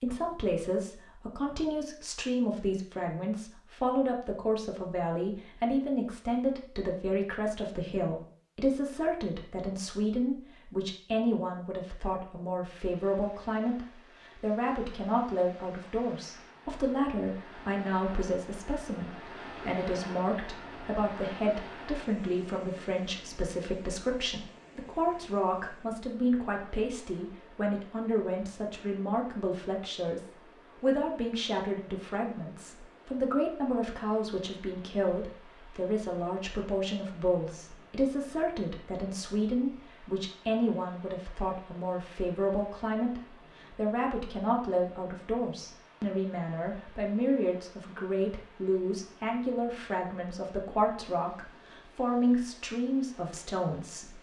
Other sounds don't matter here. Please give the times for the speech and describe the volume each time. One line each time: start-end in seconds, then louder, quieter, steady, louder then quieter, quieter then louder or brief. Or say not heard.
0.0-54.1 steady.